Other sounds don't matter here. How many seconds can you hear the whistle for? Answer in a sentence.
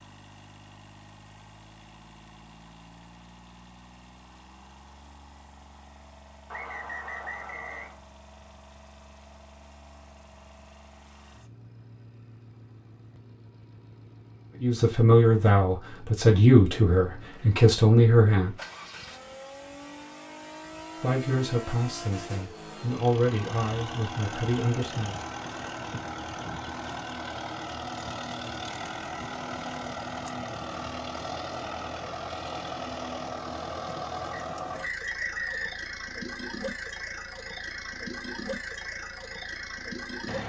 The whistle can be heard for 3 seconds in total.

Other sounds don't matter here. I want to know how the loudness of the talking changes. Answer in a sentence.
The loudness of the talking goes down.